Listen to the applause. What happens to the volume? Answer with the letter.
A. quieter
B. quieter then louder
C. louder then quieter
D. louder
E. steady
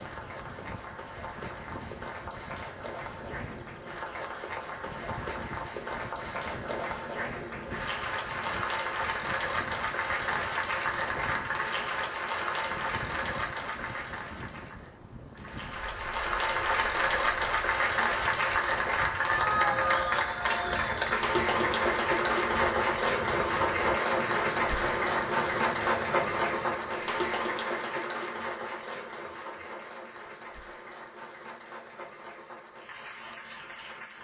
C.